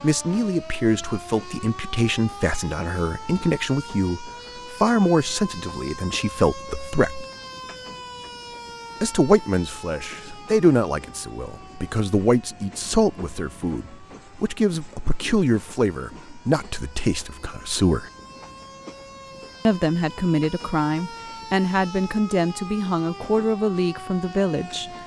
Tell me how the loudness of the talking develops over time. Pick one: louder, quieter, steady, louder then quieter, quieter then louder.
steady.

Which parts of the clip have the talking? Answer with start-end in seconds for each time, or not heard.
0.0-7.2, 9.0-18.1, 19.6-24.9.